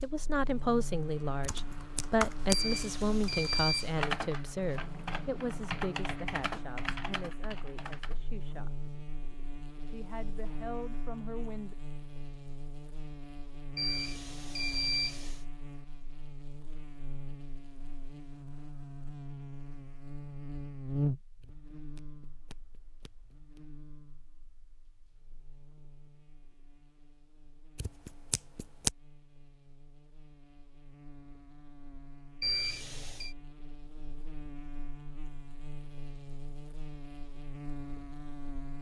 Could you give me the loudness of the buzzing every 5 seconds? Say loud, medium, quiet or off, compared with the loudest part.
medium, medium, medium, medium, loud, quiet, quiet, medium.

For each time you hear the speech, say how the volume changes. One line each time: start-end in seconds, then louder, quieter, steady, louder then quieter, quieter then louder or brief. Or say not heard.
0.0-8.8 quieter
9.8-11.8 brief.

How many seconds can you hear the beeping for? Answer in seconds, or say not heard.
4 s.